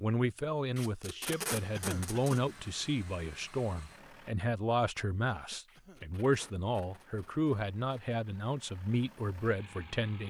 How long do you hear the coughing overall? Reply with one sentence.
The coughing can be heard for 2 seconds in total.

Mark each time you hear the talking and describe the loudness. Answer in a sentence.
You can hear the talking from 0.0 to 10.2 s, at a steady volume.